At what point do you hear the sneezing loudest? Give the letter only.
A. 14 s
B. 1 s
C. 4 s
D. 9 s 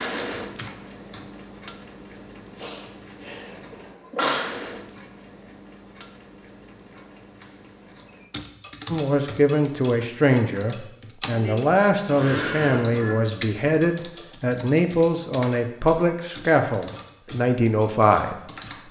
C.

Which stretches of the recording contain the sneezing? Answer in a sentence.
You can hear the sneezing from 2.5 to 4.5 s.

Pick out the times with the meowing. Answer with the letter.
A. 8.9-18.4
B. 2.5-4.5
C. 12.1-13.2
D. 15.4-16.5
C.